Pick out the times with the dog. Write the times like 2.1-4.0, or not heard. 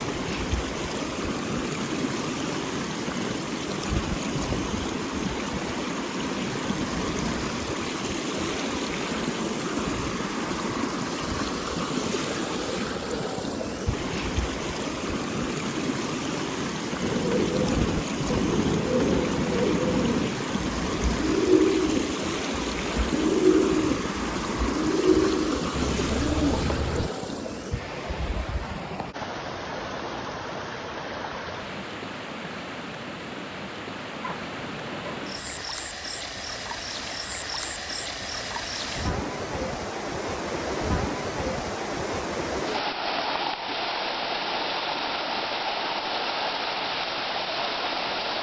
34.2-35.6.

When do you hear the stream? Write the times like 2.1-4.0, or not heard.
0.0-48.3.